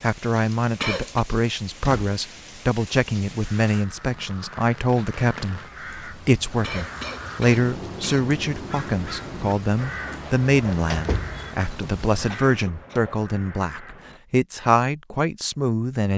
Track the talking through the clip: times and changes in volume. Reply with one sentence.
The talking can be heard from 0.0 to 16.1 s, at a steady volume.